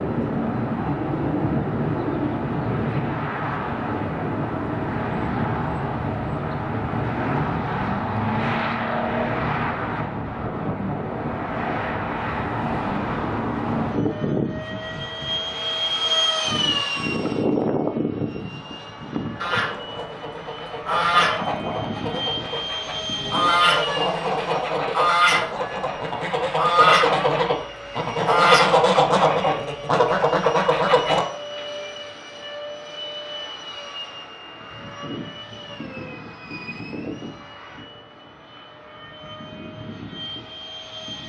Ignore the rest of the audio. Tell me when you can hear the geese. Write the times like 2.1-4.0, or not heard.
19.4-31.2.